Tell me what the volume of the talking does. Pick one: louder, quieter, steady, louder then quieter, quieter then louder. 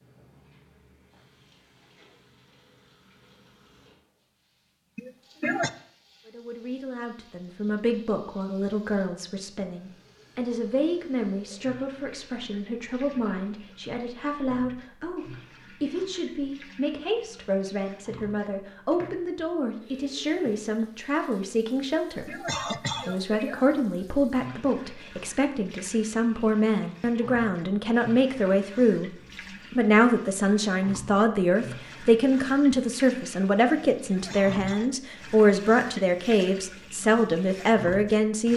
louder.